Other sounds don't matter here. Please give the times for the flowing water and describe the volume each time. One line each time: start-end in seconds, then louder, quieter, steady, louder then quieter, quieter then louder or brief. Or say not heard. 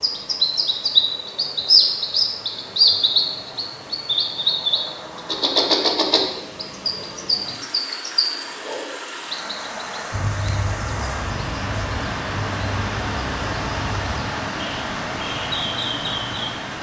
0.0-16.7 louder.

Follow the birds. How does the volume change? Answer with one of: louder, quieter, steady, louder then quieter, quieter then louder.
quieter.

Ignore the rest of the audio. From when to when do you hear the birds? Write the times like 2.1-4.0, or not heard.
0.0-16.7.